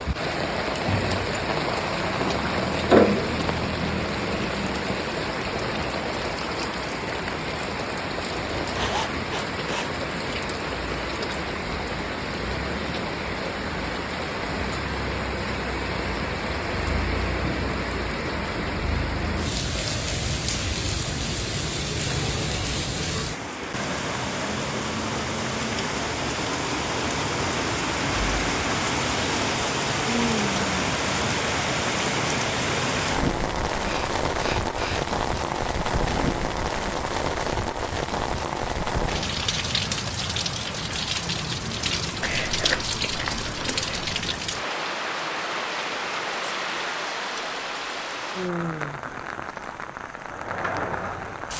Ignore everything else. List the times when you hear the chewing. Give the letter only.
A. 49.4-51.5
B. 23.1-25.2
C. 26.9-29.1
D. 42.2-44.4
D.